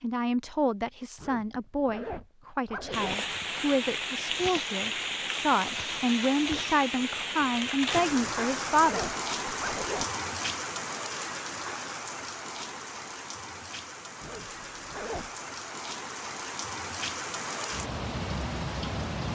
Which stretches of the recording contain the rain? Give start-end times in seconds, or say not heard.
2.9-19.3.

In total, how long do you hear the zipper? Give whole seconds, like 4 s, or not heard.
5 s.